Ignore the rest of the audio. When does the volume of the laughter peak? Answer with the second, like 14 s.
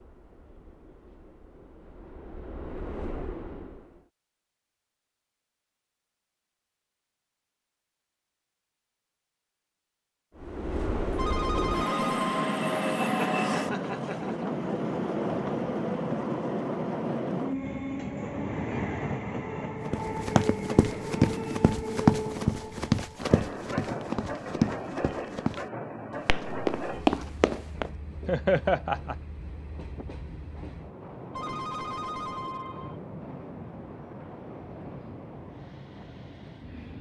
29 s.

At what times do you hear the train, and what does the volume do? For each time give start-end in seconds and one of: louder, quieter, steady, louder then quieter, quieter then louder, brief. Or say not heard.
0.0-4.1 louder
10.3-36.9 quieter.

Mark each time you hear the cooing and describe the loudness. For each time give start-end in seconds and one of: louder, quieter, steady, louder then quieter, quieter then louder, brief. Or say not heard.
not heard.